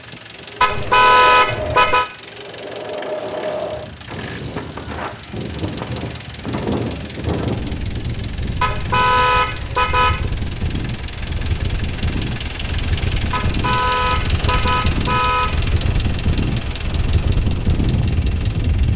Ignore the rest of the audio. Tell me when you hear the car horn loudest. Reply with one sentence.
The volume of the car horn peaks at 1 second.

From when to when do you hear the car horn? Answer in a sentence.
The car horn can be heard from 0.6 to 2.0 s, from 8.6 to 10.2 s and from 13.3 to 15.7 s.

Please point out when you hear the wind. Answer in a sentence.
You can hear the wind from 0.1 to 18.9 s.